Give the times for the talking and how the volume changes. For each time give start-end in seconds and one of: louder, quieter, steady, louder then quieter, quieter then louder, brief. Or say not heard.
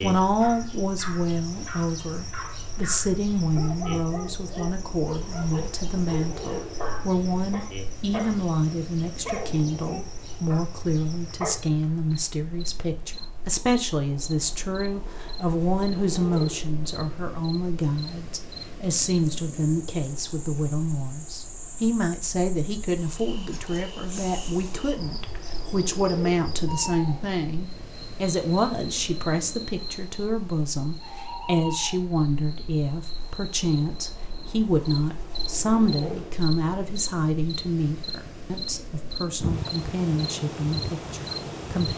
0.0-41.9 steady.